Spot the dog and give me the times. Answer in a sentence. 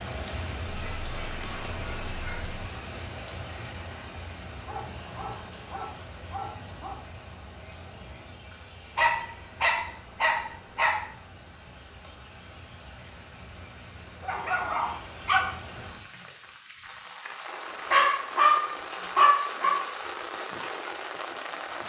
You can hear the dog from 0.7 to 2.5 s, from 4.7 to 7.0 s, from 8.9 to 10.9 s, from 14.2 to 15.4 s and from 17.9 to 19.8 s.